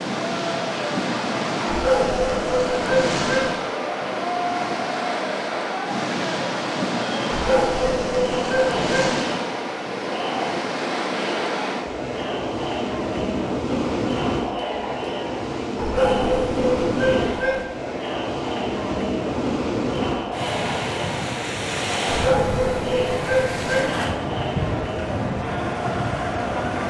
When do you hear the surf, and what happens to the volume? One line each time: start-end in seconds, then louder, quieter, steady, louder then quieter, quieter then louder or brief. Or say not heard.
0.0-26.8 steady.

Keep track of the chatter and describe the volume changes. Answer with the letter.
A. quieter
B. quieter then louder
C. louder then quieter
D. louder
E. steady
E.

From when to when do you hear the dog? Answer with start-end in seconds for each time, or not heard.
1.6-3.5, 7.3-9.2, 15.8-17.6, 22.1-23.9.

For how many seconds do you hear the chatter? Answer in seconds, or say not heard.
27 s.